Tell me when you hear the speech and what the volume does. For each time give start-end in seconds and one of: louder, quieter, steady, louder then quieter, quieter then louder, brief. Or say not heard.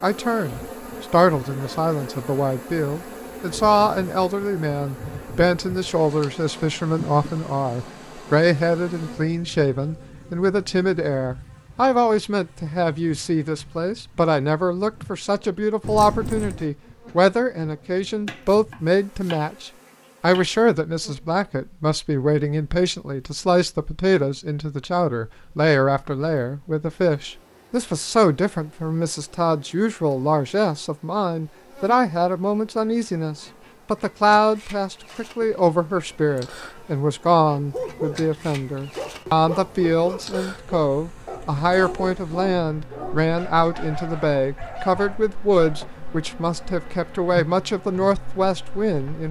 0.0-49.2 steady.